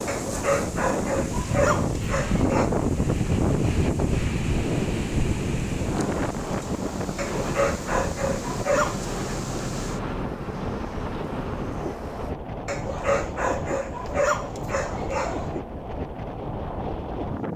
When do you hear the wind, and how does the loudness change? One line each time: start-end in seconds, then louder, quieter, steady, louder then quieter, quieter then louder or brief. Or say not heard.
0.0-17.5 quieter.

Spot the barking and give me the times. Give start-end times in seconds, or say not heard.
0.1-2.7, 7.2-9.0, 12.7-15.5.